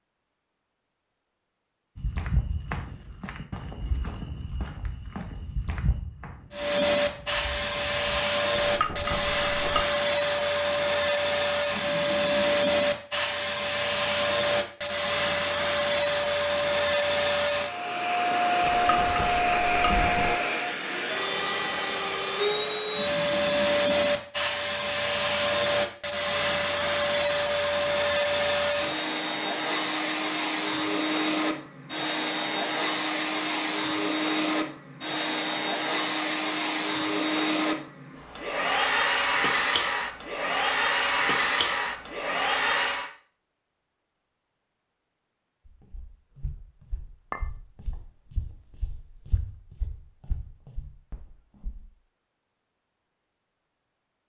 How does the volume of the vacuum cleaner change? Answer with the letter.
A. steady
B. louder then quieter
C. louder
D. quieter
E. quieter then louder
A.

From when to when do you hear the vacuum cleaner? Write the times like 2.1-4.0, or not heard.
6.5-43.1.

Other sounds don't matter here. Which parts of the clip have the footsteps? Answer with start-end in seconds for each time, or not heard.
1.9-8.2, 45.6-51.9.